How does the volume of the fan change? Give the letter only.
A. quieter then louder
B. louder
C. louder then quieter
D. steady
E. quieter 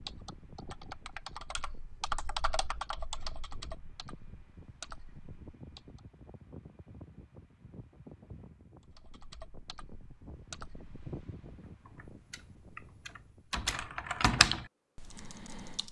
C.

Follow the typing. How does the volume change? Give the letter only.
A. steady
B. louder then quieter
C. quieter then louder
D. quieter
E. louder
C.